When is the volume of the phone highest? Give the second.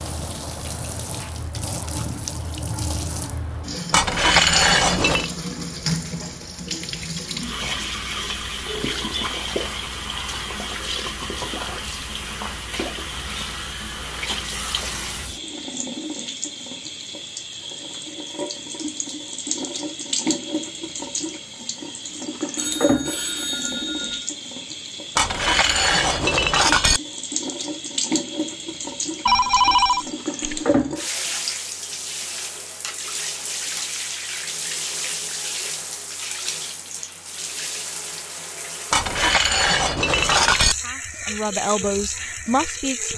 30 s.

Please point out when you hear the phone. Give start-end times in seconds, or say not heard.
8.7-9.1, 22.6-24.3, 29.2-30.8.